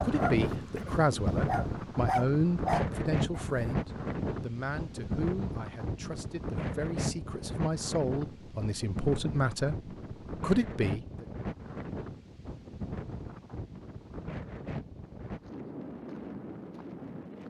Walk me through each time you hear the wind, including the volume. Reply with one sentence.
You can hear the wind from 0.0 to 17.4 s, getting quieter.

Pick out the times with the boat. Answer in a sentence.
You can't hear the boat here.